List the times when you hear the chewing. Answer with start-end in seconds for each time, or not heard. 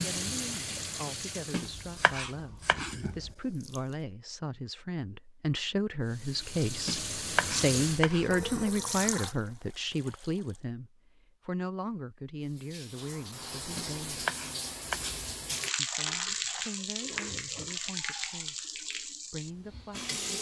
2.5-4.0.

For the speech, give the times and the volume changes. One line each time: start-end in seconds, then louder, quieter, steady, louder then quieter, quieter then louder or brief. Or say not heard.
0.0-14.3 louder then quieter
15.8-20.3 quieter then louder.